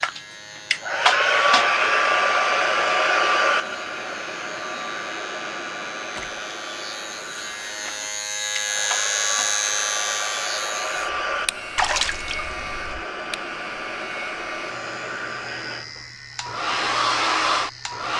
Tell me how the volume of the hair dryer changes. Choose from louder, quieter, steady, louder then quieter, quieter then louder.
quieter then louder.